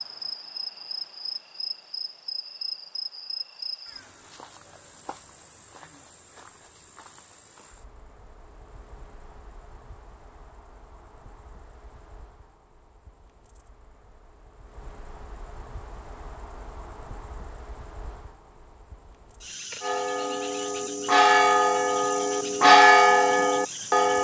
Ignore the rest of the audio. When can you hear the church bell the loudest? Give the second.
23 s.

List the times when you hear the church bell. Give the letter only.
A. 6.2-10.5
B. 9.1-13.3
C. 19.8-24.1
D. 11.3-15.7
C.